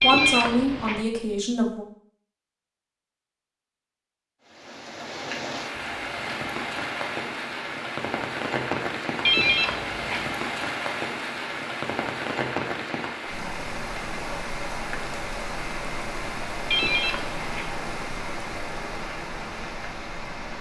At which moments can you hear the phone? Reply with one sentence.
You can hear the phone from 0.0 to 1.1 s, from 9.2 to 10.2 s and from 16.7 to 17.7 s.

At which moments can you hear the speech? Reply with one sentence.
The speech can be heard from 0.0 to 1.9 s.